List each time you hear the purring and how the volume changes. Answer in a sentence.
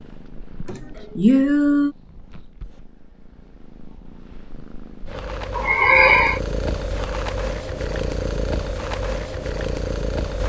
The purring can be heard from 0.0 to 10.4 s, getting louder.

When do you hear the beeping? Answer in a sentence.
The beeping can't be heard in this clip.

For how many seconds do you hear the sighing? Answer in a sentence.
The sighing can be heard for 2 seconds in total.